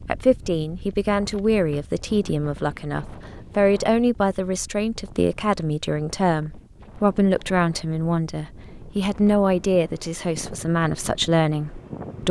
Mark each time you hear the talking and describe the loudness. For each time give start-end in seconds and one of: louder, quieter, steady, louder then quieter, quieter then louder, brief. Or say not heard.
0.1-12.2 steady.